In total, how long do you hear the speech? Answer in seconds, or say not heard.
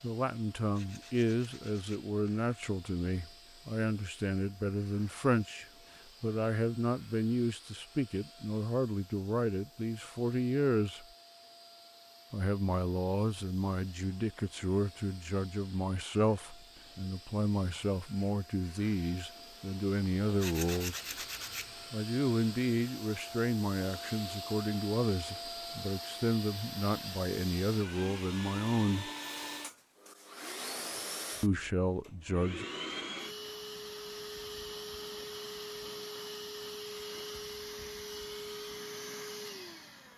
28 s.